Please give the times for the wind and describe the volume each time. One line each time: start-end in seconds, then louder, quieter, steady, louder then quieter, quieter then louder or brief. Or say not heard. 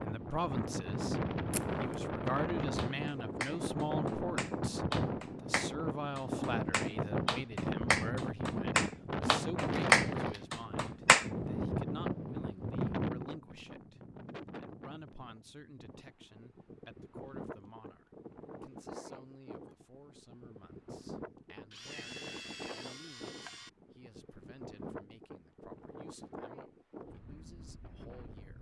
0.0-28.5 quieter.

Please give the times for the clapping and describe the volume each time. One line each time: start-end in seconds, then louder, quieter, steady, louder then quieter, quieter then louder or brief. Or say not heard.
2.8-11.2 louder.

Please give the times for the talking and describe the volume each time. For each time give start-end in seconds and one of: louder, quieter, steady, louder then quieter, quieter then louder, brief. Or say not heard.
0.0-28.5 quieter.